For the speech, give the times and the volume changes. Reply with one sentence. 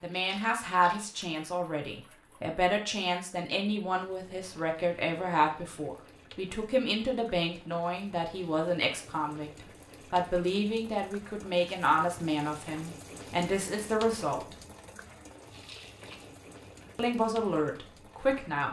You can hear the speech from 0.0 to 14.6 s, at a steady volume; and briefly from 16.9 to 18.6 s.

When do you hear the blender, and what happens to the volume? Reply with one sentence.
The blender can't be heard in this clip.